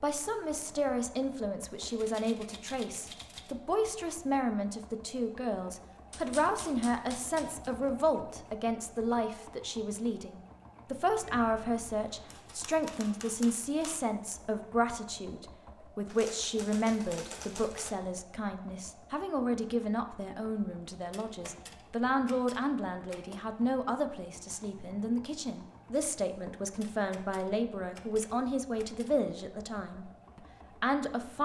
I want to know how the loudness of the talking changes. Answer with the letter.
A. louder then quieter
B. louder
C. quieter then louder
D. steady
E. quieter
D.